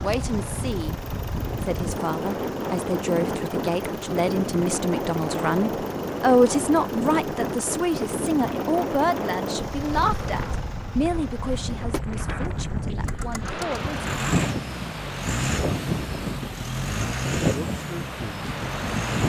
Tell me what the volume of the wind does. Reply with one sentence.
The volume of the wind stays about the same.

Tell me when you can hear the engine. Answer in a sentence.
You can hear the engine from 0.0 to 19.2 s.